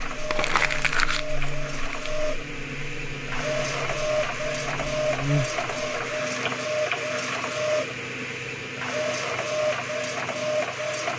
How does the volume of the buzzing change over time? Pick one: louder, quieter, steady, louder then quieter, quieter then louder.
steady.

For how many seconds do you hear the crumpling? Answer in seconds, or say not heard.
2 s.